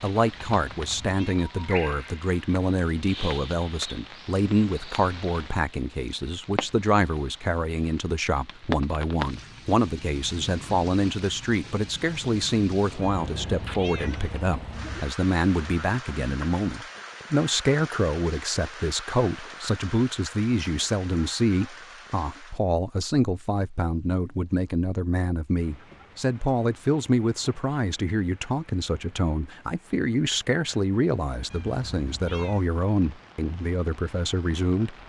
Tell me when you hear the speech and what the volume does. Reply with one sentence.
The speech can be heard from 0.0 to 35.0 s, at a steady volume.